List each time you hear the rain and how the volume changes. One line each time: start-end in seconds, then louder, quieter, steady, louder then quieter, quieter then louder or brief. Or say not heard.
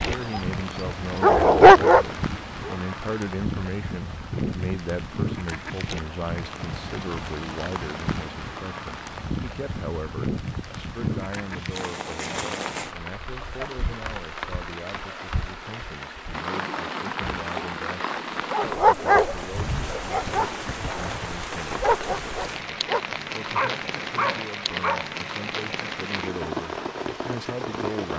0.0-28.1 steady.